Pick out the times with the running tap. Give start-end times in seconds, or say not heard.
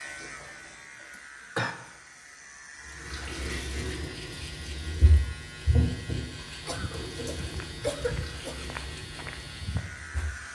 2.8-10.5.